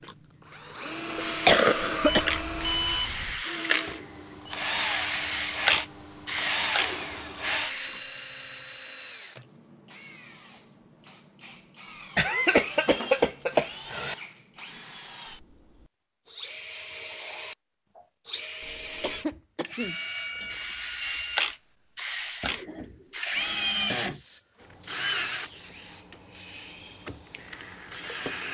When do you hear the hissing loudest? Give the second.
5 s.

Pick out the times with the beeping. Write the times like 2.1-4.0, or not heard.
2.0-3.5.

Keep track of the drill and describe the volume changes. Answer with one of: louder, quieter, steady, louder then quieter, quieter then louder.
quieter then louder.